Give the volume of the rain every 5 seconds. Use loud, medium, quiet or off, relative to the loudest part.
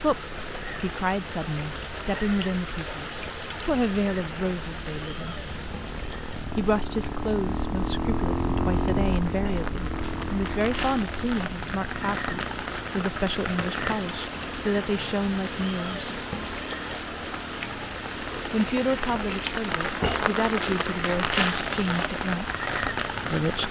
medium, quiet, medium, medium, loud.